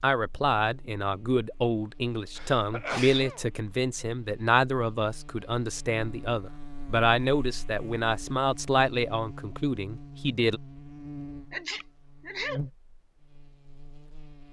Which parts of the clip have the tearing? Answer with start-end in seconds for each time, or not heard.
not heard.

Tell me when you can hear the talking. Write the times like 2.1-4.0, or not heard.
0.0-10.6.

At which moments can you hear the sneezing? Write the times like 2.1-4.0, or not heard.
2.4-3.5, 11.5-12.6.